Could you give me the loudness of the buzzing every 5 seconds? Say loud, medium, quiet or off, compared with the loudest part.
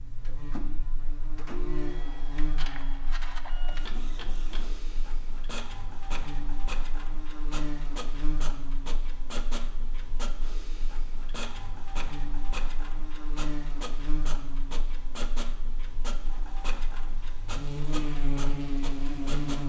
medium, medium, medium, loud.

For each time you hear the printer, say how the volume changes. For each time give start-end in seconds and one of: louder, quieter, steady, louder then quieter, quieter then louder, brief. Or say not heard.
0.0-19.6 steady.